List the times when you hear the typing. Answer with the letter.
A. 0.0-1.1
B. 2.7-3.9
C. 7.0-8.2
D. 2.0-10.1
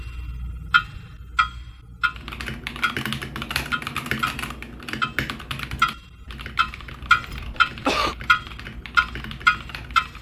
D.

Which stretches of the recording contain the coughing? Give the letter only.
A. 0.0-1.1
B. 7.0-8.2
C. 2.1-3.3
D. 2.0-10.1
B.